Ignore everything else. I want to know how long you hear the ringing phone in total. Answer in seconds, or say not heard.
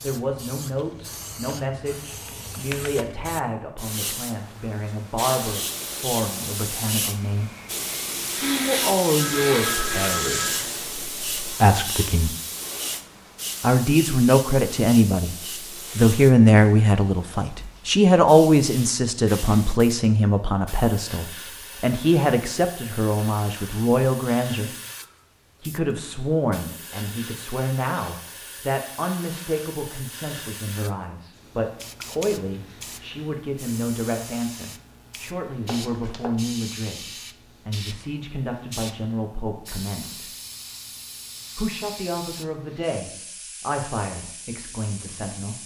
2 s.